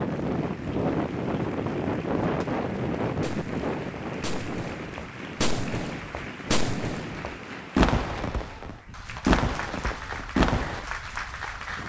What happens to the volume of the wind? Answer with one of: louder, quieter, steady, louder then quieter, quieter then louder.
quieter.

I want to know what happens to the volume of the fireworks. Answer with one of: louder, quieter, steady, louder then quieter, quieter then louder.
louder.